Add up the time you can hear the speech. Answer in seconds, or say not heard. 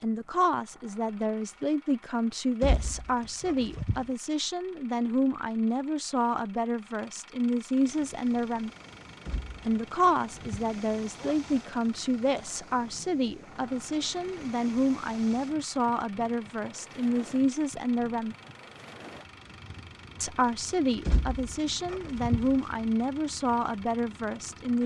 22 s.